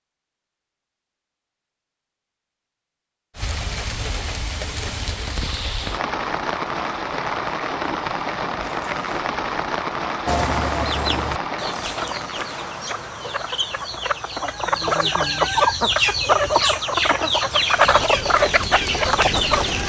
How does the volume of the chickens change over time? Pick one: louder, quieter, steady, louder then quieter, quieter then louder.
louder.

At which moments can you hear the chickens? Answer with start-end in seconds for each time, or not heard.
10.2-19.8.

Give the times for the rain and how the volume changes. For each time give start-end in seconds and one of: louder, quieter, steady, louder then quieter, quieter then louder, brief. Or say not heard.
3.4-19.8 quieter then louder.